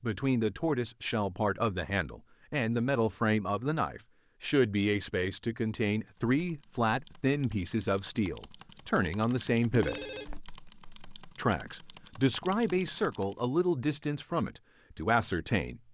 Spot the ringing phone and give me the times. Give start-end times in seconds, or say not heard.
9.7-10.4.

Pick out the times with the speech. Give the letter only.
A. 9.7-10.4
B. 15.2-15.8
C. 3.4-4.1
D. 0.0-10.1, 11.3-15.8
D.